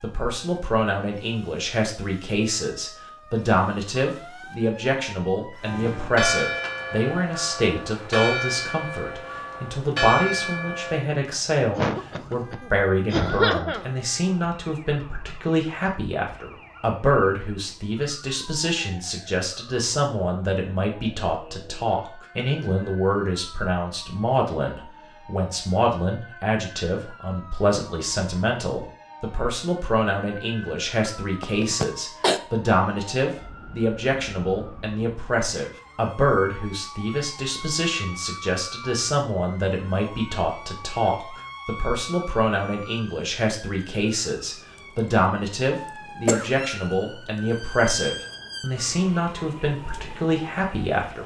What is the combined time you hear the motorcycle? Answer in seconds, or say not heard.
not heard.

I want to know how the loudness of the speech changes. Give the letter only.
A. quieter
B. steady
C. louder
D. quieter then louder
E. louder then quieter
B.